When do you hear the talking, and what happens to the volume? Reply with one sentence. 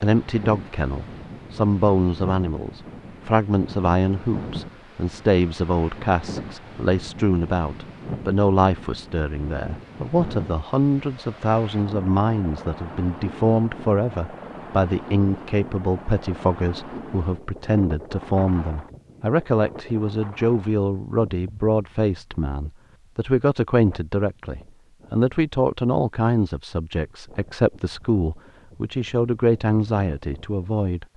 You can hear the talking from 0.0 to 31.1 s, at a steady volume.